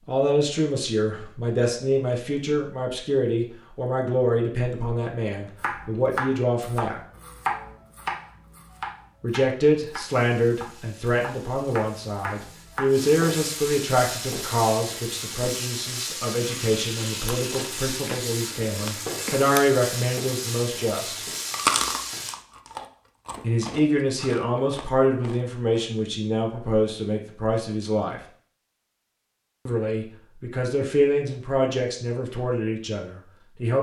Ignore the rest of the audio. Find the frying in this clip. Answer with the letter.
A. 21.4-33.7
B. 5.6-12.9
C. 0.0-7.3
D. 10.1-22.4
D.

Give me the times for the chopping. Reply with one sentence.
The chopping can be heard from 5.6 to 12.9 s.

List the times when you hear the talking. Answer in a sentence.
You can hear the talking from 0.1 to 7.0 s, from 9.2 to 21.2 s, from 23.4 to 28.2 s and from 29.6 to 33.7 s.